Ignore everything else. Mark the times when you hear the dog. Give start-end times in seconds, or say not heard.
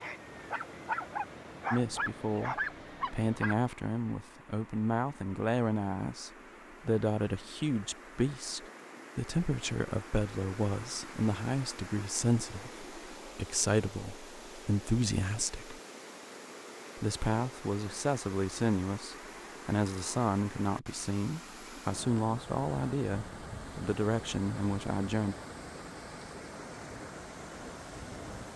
0.0-3.5.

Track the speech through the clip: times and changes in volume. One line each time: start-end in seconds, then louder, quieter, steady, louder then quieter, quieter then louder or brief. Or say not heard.
1.7-15.8 steady
16.9-25.4 steady.